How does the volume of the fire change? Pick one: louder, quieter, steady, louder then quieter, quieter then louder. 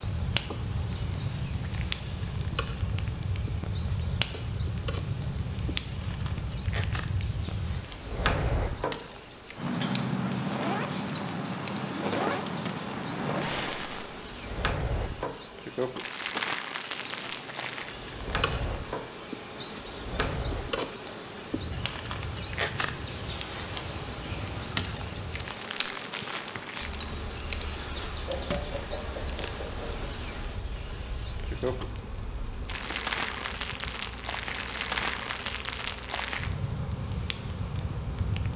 quieter then louder.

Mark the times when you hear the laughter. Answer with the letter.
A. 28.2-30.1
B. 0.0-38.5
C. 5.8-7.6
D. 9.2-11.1
A.